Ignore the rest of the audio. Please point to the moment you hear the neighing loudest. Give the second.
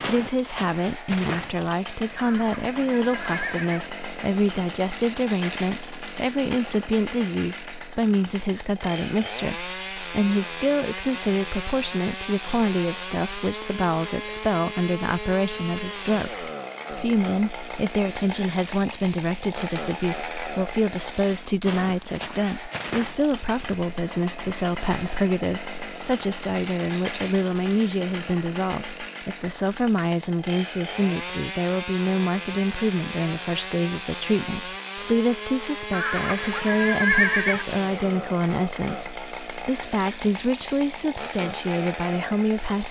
37 s.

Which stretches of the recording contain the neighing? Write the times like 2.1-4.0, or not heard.
2.1-3.9, 35.9-37.6.